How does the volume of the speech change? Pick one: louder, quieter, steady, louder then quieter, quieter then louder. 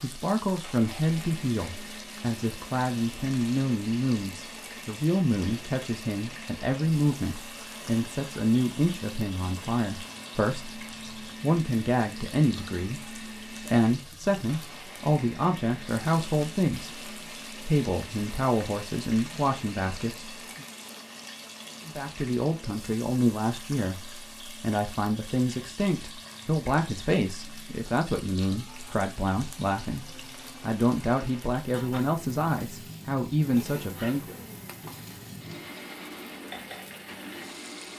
steady.